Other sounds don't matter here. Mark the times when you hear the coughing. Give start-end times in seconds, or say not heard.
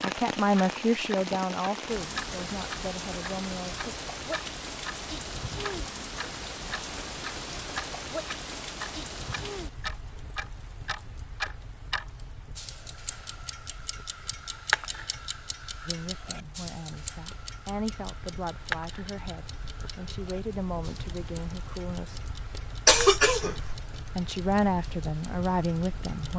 22.9-23.8.